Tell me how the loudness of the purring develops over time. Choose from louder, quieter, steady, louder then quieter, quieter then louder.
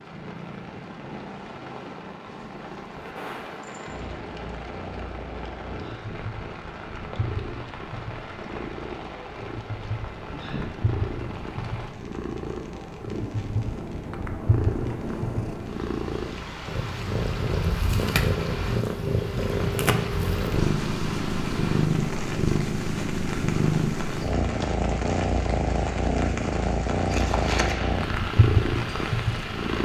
louder.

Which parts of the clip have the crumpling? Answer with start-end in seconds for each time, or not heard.
27.1-27.8.